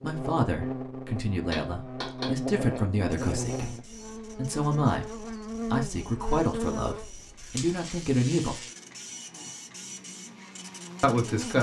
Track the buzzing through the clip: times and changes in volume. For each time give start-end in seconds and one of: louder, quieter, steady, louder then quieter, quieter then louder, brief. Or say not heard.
0.0-11.5 quieter.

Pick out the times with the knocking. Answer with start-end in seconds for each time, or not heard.
1.4-2.8.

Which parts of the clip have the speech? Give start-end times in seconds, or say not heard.
0.0-8.7, 11.0-11.5.